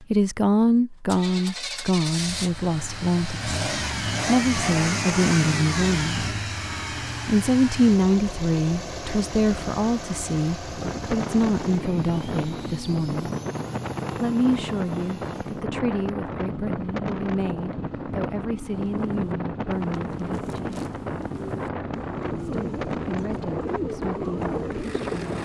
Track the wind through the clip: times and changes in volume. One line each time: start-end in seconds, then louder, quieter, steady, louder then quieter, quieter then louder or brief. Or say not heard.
10.7-25.4 steady.